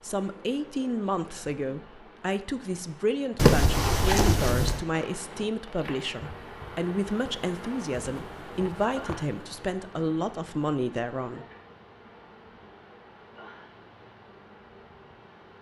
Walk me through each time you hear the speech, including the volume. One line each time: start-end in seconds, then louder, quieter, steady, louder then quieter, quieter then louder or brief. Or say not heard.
0.0-11.4 steady.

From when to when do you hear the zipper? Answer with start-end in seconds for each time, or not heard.
3.4-4.8, 8.1-9.3.